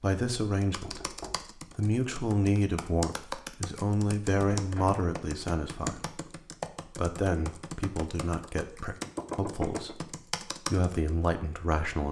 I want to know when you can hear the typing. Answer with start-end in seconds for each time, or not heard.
0.6-11.3.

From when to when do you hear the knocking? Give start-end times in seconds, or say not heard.
0.8-1.6, 4.5-5.0, 9.2-9.9.